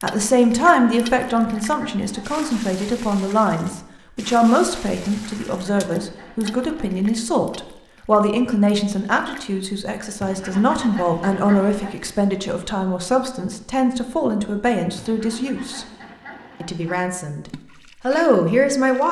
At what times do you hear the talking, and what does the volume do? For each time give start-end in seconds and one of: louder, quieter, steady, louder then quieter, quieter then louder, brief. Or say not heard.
0.0-15.8 steady
16.6-19.0 brief.